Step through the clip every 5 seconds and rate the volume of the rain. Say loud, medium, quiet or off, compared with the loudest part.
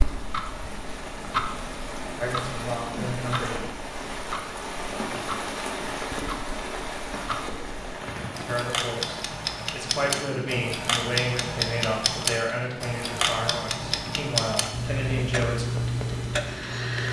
loud, loud, medium, medium.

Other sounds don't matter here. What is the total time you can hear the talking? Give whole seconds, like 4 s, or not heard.
9 s.